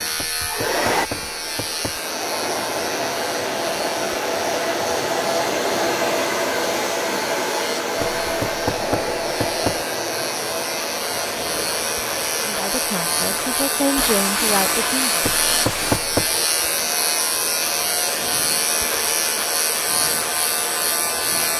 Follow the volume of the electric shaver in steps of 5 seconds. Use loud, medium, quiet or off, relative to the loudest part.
medium, medium, loud, loud, loud.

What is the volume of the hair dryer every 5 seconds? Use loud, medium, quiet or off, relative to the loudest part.
loud, loud, medium, medium, medium.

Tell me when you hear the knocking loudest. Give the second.
16 s.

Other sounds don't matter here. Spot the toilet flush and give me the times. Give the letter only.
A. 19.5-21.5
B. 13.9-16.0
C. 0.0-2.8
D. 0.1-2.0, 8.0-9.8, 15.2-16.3
B.